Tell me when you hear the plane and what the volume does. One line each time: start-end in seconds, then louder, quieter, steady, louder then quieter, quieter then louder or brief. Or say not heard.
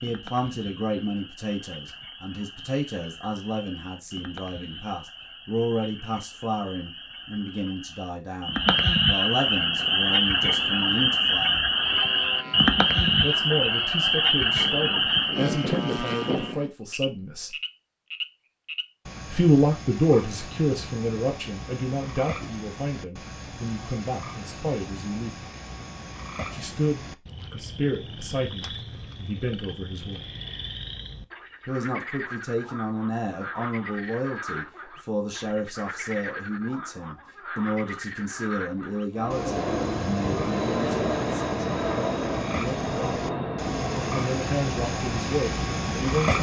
9.5-16.7 louder
39.1-46.3 quieter.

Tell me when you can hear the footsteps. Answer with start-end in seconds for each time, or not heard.
not heard.